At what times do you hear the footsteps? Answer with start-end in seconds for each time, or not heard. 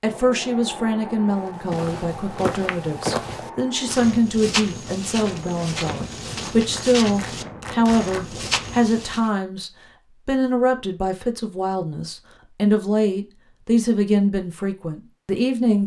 1.2-9.3.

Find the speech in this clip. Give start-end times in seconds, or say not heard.
0.0-15.8.